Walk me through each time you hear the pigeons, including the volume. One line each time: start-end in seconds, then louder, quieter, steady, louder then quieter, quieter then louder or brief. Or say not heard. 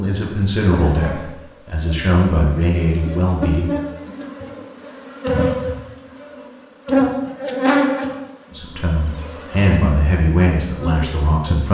not heard.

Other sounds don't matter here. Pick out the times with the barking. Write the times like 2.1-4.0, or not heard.
not heard.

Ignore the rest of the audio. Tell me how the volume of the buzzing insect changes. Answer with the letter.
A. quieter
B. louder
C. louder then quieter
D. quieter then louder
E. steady
C.